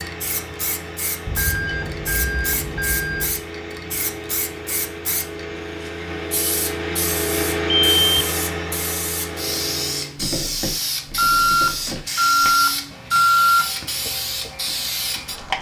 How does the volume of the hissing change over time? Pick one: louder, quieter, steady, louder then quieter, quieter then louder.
louder.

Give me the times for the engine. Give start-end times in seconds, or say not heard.
0.0-10.2.